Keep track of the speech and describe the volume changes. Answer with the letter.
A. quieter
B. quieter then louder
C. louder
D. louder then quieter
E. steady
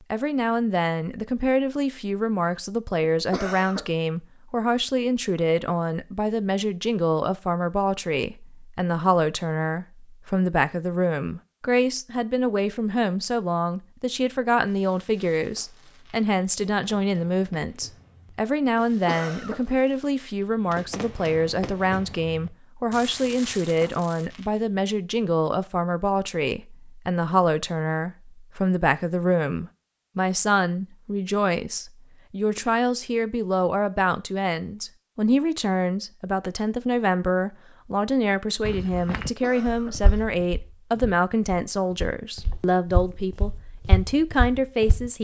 E.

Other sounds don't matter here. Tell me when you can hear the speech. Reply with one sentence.
The speech can be heard from 0.1 to 45.1 s.